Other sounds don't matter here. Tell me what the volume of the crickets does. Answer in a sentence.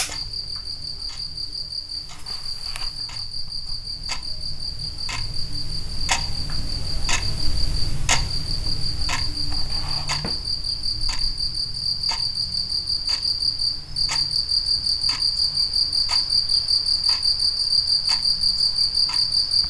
The loudness of the crickets goes up.